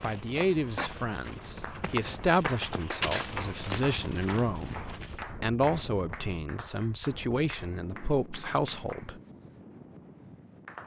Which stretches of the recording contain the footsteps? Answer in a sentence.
The footsteps can be heard from 0.0 to 5.2 s.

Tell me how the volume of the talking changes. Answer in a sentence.
The loudness of the talking stays about the same.